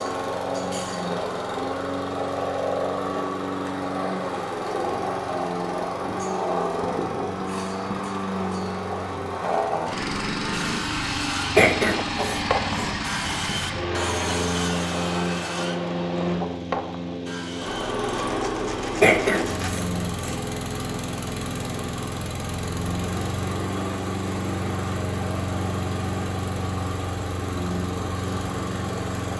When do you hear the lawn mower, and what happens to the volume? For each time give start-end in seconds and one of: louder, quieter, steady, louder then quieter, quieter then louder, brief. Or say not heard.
0.0-29.3 steady.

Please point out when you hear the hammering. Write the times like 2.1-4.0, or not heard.
not heard.